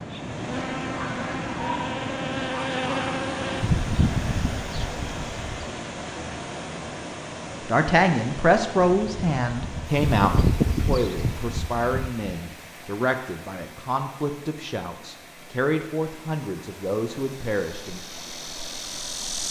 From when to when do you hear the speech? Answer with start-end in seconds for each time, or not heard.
7.7-18.0.